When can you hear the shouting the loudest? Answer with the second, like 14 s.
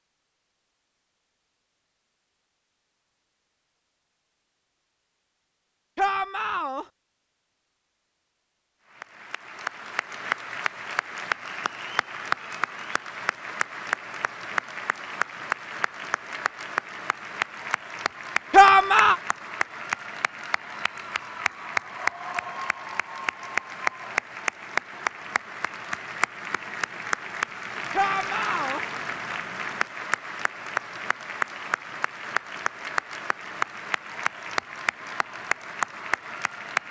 19 s.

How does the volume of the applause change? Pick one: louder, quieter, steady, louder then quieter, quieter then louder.
steady.